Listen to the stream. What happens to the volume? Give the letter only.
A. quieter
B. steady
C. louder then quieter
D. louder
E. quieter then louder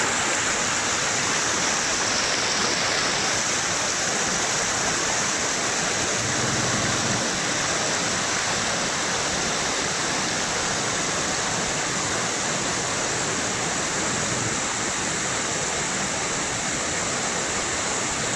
B.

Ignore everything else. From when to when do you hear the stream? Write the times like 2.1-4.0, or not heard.
0.0-18.3.